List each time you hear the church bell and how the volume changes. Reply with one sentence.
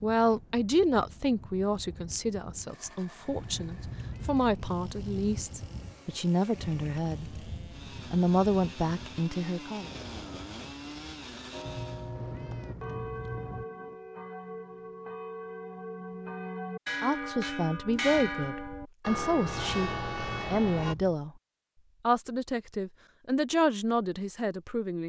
You can hear the church bell from 11.5 to 20.9 s, getting louder.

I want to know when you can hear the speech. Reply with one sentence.
You can hear the speech from 0.0 to 7.5 s, from 8.1 to 9.9 s, from 17.0 to 21.3 s and from 22.1 to 25.0 s.